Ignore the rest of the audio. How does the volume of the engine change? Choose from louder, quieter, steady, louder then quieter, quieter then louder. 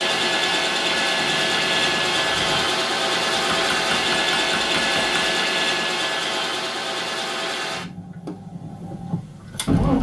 quieter.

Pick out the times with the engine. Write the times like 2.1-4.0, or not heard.
0.0-9.9.